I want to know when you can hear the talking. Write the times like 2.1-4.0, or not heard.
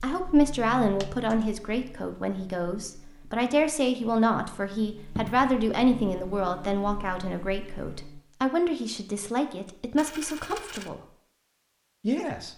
0.0-11.0, 12.0-12.5.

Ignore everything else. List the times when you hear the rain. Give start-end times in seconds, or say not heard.
not heard.